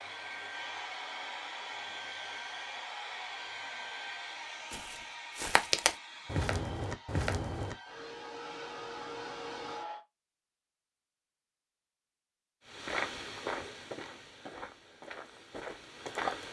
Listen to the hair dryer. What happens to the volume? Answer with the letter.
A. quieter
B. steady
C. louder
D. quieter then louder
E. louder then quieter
D.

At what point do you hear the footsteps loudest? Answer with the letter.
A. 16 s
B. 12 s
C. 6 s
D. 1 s
C.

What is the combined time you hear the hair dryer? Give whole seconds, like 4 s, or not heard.
10 s.